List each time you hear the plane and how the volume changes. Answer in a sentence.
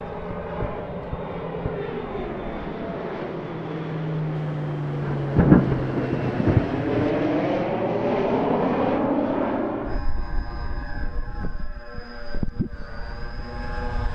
The plane can be heard from 0.0 to 14.1 s, getting louder then quieter.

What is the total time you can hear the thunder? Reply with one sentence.
You can hear the thunder for 2 seconds altogether.